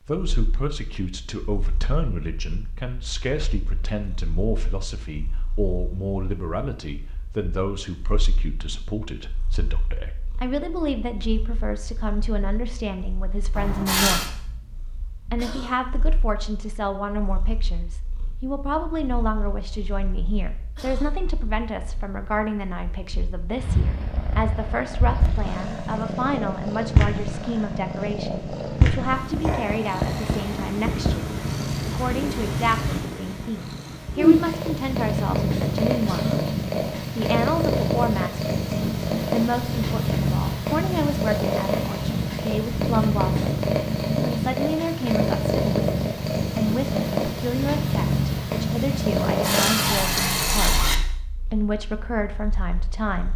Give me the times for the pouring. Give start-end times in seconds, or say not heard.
13.6-14.3, 25.2-26.1, 49.2-51.0.